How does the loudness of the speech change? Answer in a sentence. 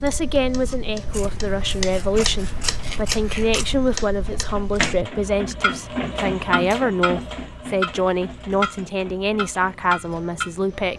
The volume of the speech stays about the same.